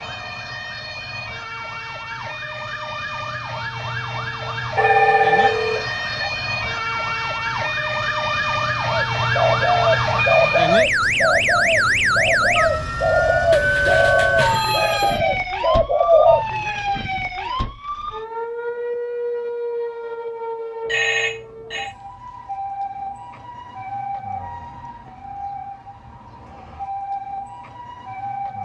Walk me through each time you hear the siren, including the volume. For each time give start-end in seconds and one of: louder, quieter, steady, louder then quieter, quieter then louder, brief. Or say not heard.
0.0-28.6 louder then quieter.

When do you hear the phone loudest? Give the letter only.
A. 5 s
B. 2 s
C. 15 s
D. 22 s
A.